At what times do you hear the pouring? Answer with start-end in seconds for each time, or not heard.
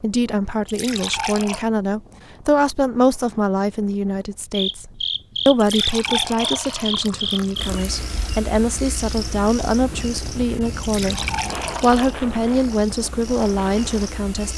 0.7-1.6, 5.5-8.0, 10.8-12.2.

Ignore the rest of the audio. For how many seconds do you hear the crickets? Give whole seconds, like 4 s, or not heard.
10 s.